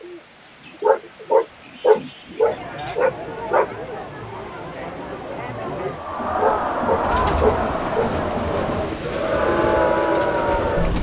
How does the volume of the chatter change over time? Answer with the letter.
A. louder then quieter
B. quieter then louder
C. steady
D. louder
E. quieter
D.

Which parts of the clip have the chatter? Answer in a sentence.
The chatter can be heard from 2.4 to 10.9 s.